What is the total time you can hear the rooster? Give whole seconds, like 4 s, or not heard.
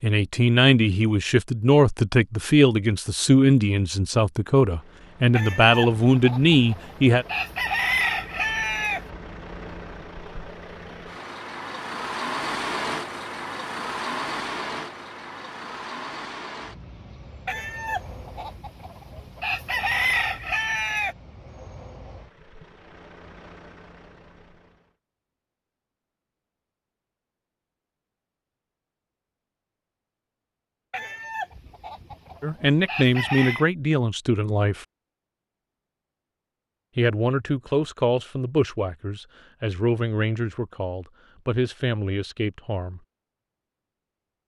10 s.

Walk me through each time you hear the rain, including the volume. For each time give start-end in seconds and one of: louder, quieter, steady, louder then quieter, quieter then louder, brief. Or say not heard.
not heard.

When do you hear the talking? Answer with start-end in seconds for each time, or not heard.
0.0-7.2, 32.4-34.9, 37.0-43.0.